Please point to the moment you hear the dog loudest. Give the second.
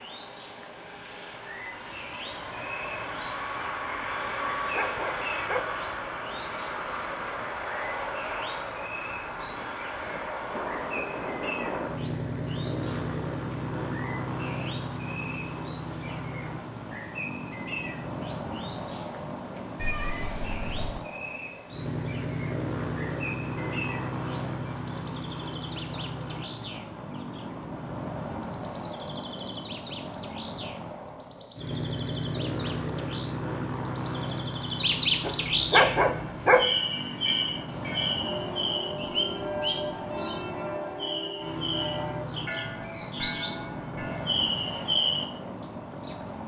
36 s.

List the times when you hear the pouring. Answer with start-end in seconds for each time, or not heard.
not heard.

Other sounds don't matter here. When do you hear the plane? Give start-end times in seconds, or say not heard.
0.0-46.4.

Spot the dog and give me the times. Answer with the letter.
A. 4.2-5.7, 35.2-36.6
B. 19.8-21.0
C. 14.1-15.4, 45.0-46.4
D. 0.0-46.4
A.